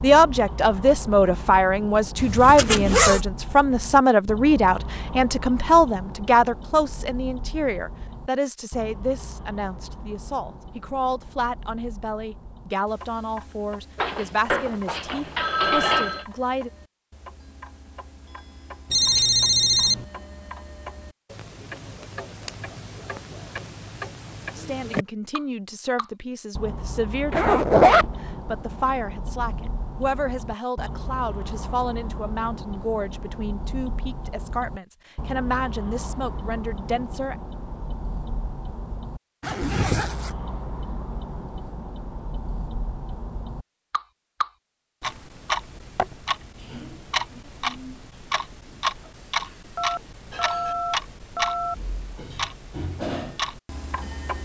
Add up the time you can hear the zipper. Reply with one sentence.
The zipper can be heard for 3 seconds in total.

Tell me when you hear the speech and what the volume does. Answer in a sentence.
The speech can be heard from 0.0 to 16.7 s, getting quieter; and from 24.6 to 37.4 s, at a steady volume.